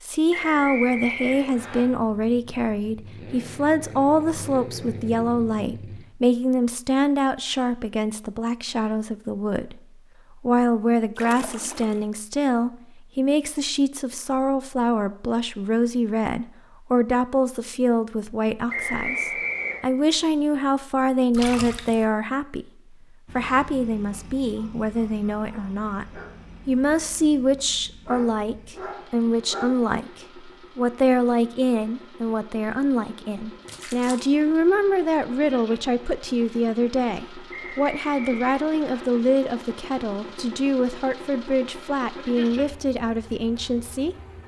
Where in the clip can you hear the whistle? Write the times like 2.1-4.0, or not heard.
0.3-1.9, 18.6-19.8, 37.5-39.0.